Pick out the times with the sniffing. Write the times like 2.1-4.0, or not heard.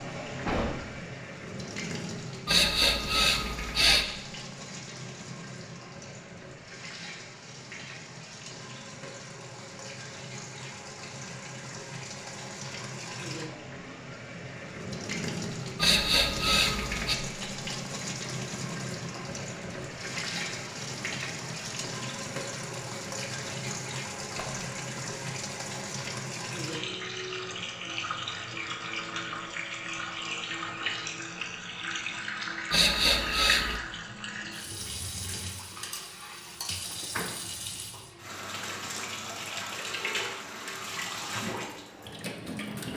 2.5-4.0, 15.8-17.1, 32.7-33.8.